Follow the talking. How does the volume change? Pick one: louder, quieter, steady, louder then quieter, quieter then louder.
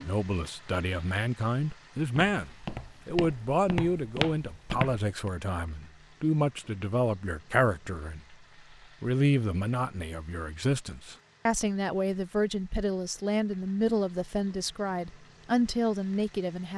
steady.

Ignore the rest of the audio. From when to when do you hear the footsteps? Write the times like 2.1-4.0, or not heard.
2.4-5.3.